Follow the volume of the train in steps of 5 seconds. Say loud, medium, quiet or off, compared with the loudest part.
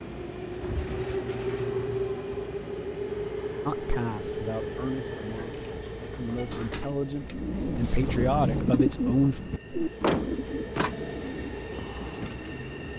loud, medium, medium.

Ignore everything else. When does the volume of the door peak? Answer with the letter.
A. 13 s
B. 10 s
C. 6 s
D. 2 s
B.